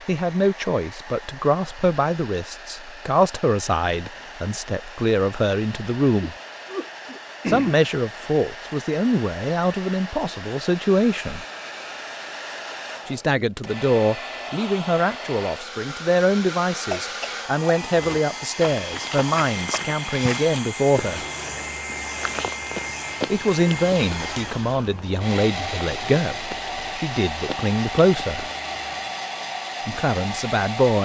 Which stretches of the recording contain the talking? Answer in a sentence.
The talking can be heard from 0.1 to 6.3 s, from 7.5 to 11.4 s, from 13.1 to 21.2 s, from 23.3 to 28.4 s and from 29.9 to 30.9 s.